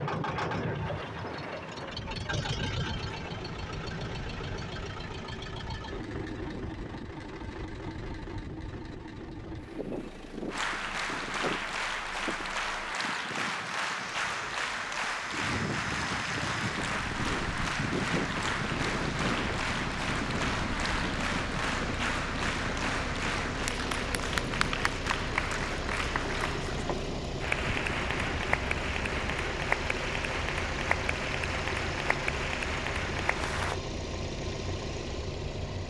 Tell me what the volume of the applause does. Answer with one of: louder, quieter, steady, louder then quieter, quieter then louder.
steady.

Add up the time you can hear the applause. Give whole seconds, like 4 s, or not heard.
23 s.